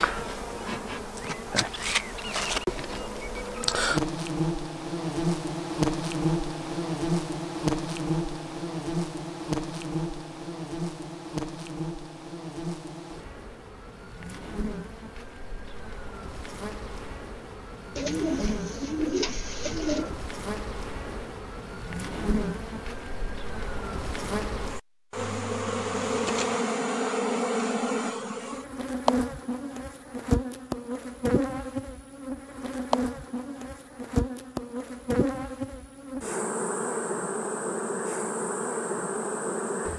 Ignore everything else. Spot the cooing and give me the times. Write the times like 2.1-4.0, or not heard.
17.9-20.1.